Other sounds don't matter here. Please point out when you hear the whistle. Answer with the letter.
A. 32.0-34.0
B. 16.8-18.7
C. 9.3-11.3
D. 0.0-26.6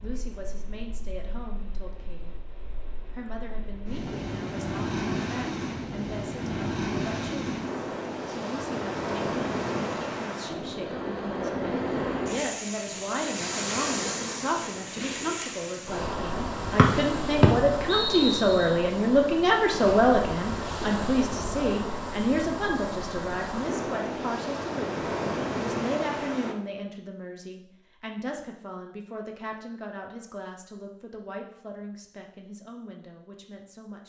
B.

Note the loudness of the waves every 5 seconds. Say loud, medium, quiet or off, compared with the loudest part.
medium, loud, loud, loud, loud, loud, off.